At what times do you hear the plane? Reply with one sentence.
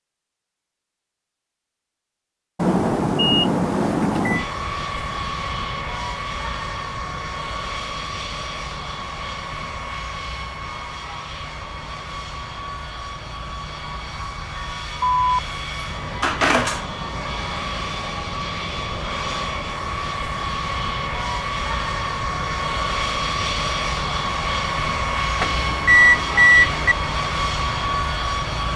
You can hear the plane from 4.3 to 28.7 s.